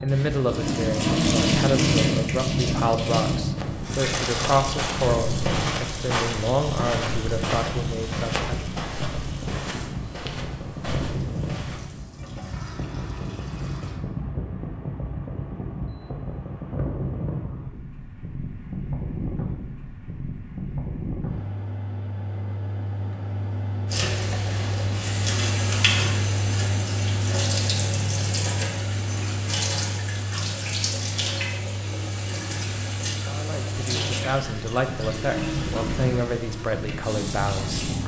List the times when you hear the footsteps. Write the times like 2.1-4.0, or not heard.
3.5-12.1.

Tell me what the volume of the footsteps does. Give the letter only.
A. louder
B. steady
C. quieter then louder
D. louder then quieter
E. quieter
E.